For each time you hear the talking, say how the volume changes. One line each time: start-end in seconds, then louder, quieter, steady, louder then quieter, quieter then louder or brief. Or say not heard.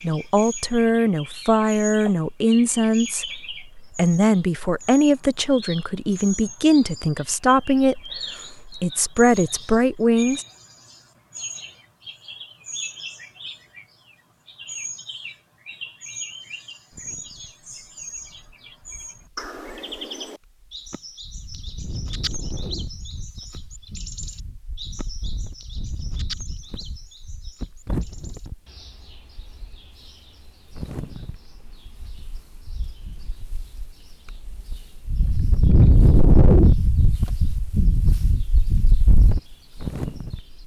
0.0-10.4 steady.